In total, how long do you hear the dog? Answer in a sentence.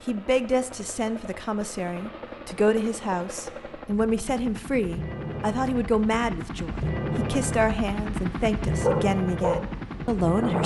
You can hear the dog for 2 seconds altogether.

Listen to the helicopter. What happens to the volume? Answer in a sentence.
The loudness of the helicopter goes up.